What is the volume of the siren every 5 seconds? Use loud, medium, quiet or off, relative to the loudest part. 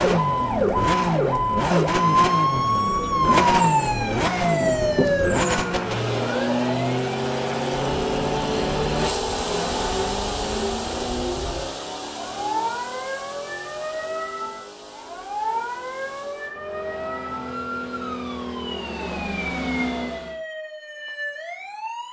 loud, medium, medium, medium, quiet.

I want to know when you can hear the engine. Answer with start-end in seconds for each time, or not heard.
0.0-20.4.